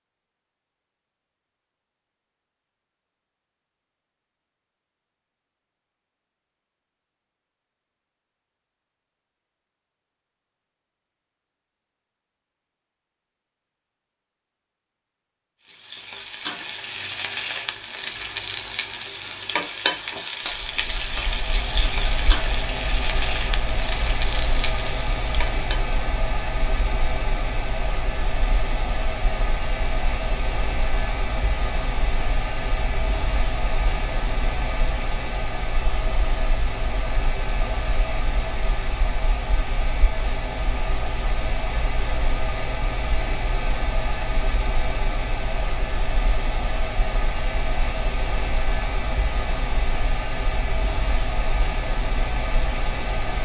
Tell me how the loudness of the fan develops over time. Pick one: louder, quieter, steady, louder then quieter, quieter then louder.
steady.